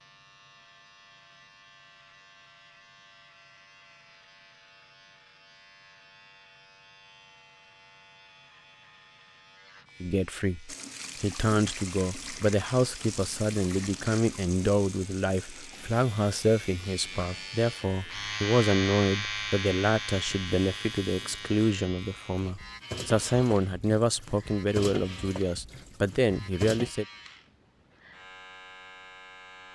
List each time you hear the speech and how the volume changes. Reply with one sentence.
You can hear the speech from 10.0 to 27.1 s, at a steady volume.